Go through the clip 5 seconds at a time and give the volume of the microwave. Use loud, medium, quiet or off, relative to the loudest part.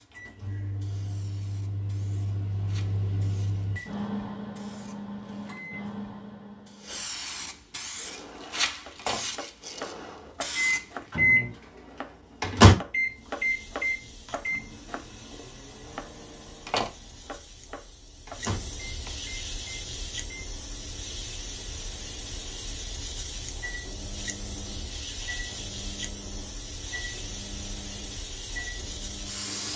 quiet, quiet, loud, quiet, quiet, quiet.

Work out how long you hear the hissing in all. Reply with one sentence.
The hissing can be heard for 28 seconds in total.